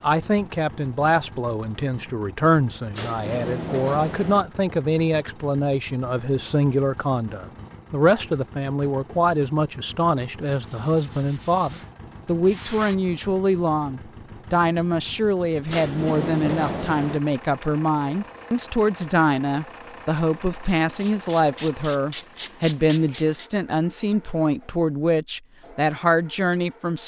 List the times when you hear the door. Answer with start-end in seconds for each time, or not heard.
2.9-4.5, 15.7-17.2.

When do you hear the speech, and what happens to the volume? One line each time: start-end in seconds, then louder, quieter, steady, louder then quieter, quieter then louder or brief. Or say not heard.
0.0-27.0 steady.